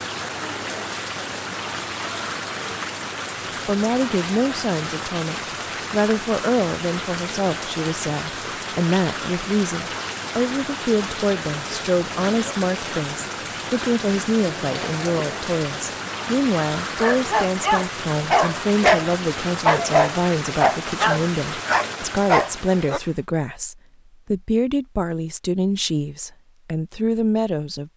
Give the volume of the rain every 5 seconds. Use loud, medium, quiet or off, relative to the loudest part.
loud, loud, loud, loud, loud, off.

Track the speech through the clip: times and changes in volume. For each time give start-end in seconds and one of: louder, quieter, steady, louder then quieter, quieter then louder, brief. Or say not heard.
3.6-27.9 steady.